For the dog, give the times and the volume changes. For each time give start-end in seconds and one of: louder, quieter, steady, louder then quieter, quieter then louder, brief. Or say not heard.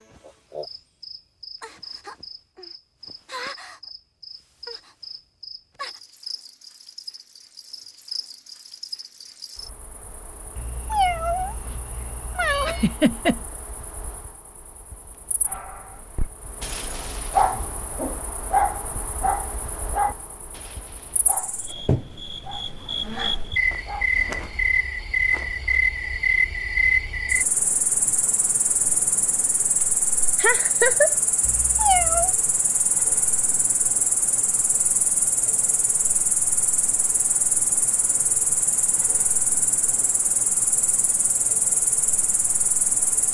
15.4-24.1 quieter.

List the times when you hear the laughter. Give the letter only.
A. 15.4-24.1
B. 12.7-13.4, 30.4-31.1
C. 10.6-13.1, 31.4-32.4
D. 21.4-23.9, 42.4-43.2
B.